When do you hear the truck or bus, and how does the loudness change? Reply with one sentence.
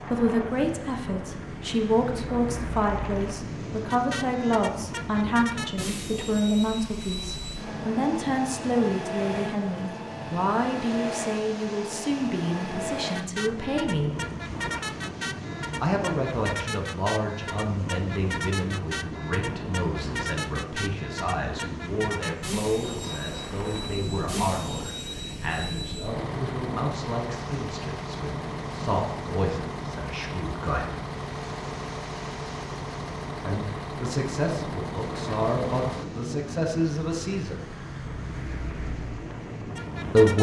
You can hear the truck or bus from 0.0 to 40.3 s, at a steady volume.